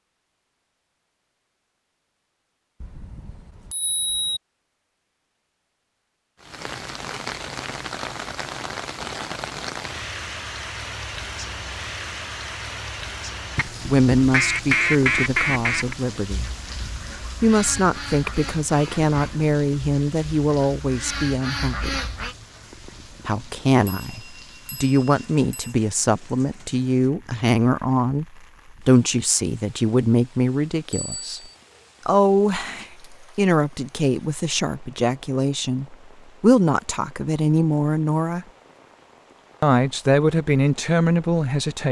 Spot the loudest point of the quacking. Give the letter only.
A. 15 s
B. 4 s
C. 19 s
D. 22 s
A.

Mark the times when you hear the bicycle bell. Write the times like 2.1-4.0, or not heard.
2.8-4.4, 23.9-25.8, 30.9-31.4.